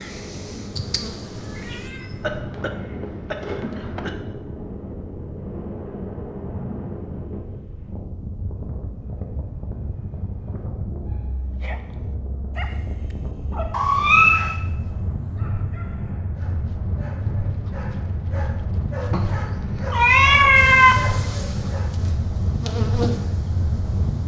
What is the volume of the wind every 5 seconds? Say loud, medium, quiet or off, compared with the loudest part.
medium, medium, medium, loud, loud.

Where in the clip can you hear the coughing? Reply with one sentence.
You can hear the coughing from 2.2 to 4.2 s.